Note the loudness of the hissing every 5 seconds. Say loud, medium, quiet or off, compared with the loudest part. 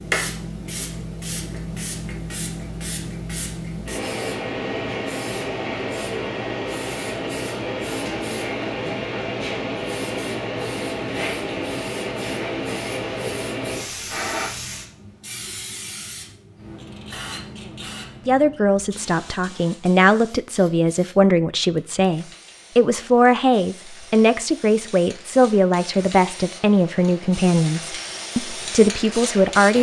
loud, loud, loud, medium, quiet, medium.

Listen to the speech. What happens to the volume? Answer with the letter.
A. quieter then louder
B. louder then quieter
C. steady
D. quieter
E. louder
C.